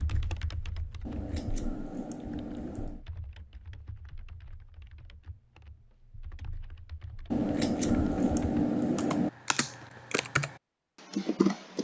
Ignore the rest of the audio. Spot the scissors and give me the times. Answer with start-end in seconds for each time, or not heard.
1.1-3.0, 7.3-9.3.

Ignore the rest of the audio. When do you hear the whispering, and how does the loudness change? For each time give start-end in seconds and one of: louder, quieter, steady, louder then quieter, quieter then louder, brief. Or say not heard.
not heard.